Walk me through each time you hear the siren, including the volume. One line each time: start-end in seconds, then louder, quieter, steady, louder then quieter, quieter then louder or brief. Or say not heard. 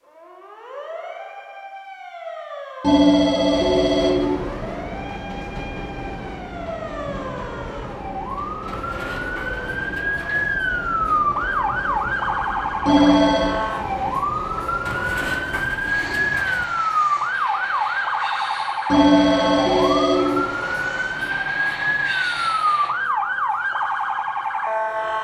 0.0-25.1 louder.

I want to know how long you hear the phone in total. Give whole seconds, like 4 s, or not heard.
4 s.